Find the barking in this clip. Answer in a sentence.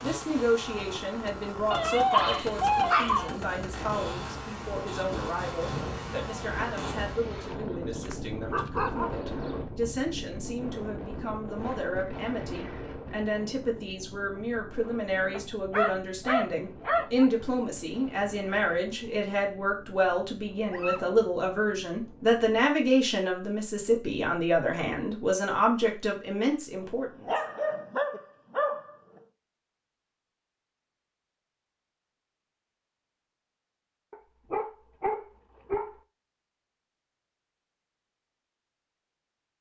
You can hear the barking from 1.7 to 3.4 s, from 7.3 to 9.6 s, from 15.3 to 17.2 s, from 20.6 to 21.1 s, from 26.8 to 28.9 s and from 34.1 to 36.0 s.